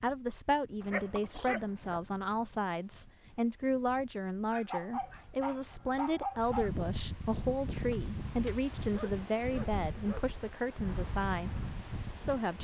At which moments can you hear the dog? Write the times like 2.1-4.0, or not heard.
0.8-2.0, 4.5-6.7, 8.4-10.2.